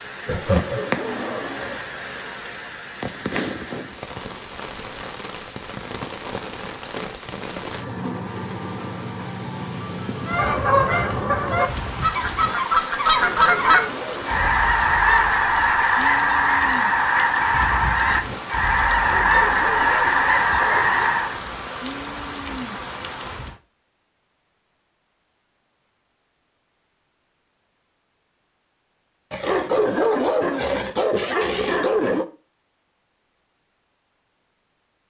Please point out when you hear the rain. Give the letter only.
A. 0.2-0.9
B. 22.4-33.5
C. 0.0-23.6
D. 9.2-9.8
C.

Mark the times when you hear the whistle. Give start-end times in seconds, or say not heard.
not heard.